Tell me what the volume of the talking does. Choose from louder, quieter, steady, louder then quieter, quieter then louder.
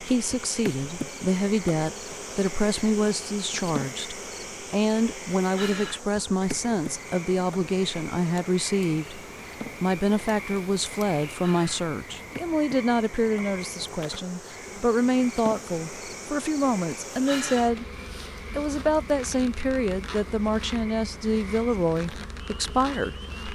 steady.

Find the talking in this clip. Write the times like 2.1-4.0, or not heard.
0.0-9.2, 9.8-17.9, 18.5-23.1.